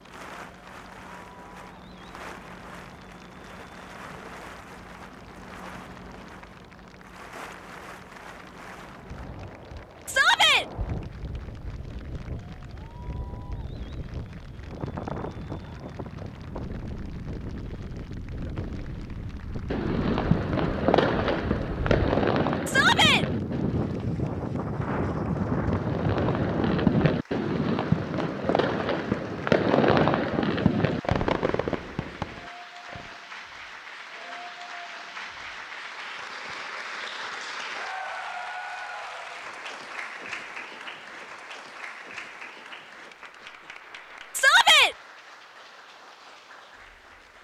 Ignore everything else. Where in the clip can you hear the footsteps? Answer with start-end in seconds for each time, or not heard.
not heard.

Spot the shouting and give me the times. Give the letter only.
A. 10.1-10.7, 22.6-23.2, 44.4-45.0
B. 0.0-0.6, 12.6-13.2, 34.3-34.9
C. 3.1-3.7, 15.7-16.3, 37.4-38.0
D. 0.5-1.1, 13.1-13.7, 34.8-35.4
A.